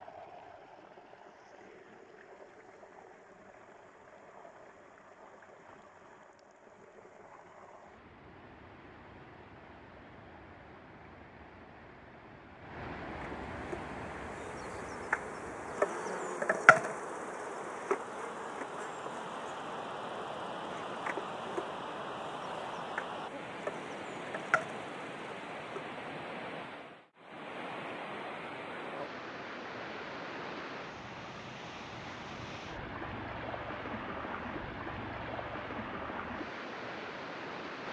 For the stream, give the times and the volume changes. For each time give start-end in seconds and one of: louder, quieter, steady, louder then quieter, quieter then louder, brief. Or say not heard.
0.0-37.8 louder.